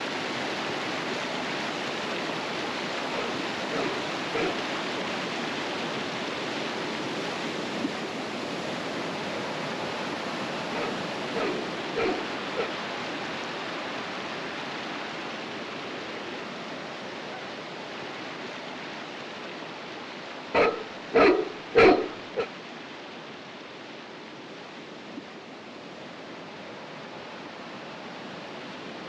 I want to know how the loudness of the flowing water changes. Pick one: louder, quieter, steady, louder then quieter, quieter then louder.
quieter.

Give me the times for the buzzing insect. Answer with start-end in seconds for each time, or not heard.
not heard.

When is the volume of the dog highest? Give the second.
22 s.